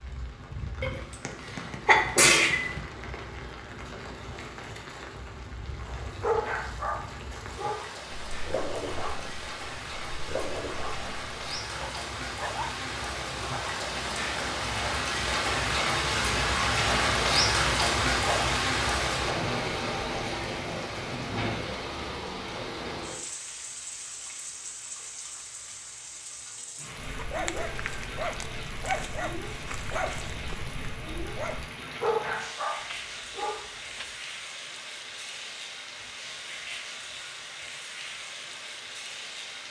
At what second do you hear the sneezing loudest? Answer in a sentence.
The loudest moment of the sneezing is at 2 seconds.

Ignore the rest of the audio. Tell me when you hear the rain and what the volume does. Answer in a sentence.
You can hear the rain from 0.0 to 39.6 s, getting louder then quieter.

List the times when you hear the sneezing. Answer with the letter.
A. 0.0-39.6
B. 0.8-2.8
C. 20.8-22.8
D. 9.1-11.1
B.